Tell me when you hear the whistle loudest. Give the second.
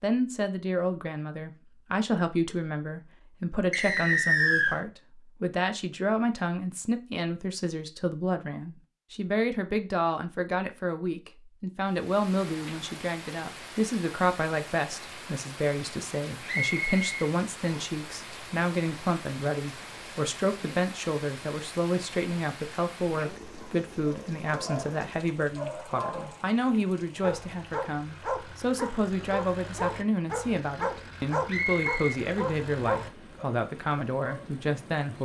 4 s.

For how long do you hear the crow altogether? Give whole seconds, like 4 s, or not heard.
not heard.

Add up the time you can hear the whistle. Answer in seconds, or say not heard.
3 s.